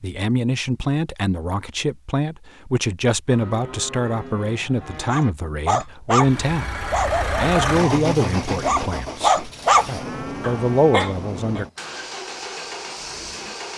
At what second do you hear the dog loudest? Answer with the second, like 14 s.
10 s.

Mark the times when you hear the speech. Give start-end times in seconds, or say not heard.
0.0-11.7.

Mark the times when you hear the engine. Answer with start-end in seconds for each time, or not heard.
6.1-13.7.